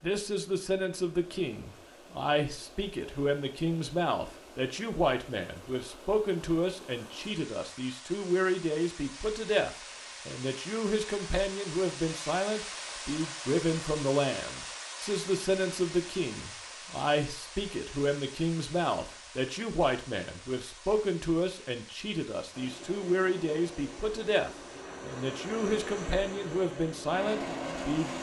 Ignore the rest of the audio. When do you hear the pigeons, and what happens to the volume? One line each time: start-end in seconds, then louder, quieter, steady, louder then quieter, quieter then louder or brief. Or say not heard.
not heard.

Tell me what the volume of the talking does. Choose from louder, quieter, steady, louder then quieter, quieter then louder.
steady.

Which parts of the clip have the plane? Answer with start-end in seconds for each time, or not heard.
22.5-28.1.